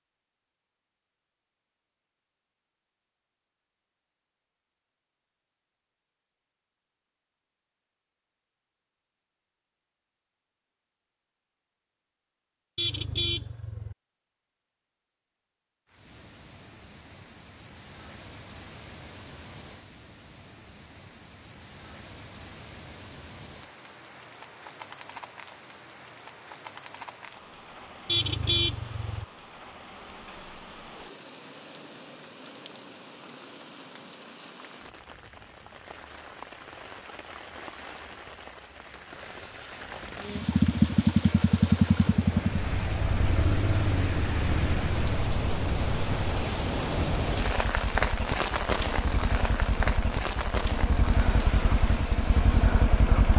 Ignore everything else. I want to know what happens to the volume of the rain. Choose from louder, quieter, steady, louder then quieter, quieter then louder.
louder.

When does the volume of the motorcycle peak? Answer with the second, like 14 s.
41 s.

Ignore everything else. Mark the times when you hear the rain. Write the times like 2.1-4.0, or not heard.
15.8-53.3.